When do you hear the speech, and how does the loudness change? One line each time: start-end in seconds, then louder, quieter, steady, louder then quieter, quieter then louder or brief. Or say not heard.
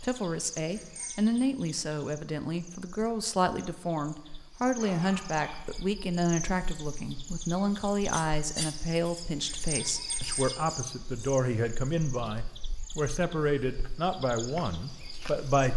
0.0-15.7 steady.